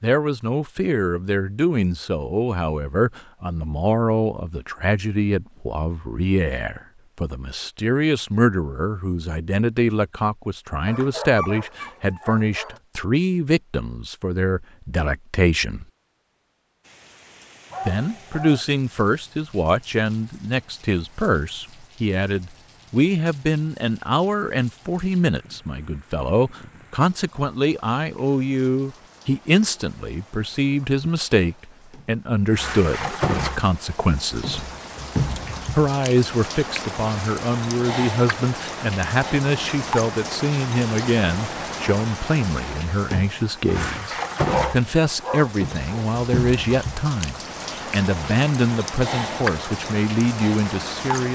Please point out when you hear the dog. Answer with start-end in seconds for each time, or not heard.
10.8-12.8, 17.7-18.6, 44.5-46.0.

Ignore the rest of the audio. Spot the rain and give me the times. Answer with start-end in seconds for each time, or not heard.
16.8-51.3.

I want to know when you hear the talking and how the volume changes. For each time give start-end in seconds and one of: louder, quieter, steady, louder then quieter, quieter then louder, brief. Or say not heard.
0.0-15.8 steady
17.9-34.7 steady
35.8-51.3 steady.